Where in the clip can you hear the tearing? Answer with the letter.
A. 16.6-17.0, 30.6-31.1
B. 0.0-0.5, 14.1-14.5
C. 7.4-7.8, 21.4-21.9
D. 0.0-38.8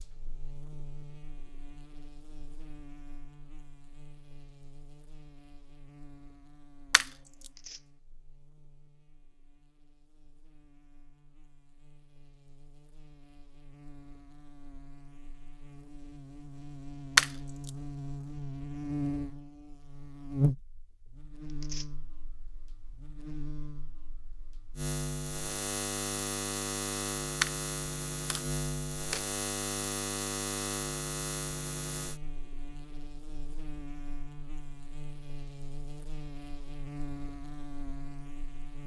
C.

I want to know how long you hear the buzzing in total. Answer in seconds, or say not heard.
39 s.